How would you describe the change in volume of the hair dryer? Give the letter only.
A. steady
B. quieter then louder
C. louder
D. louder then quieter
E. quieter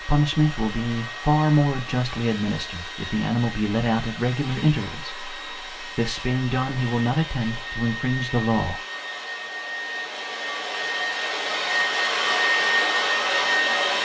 C.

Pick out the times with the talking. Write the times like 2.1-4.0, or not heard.
0.0-8.8.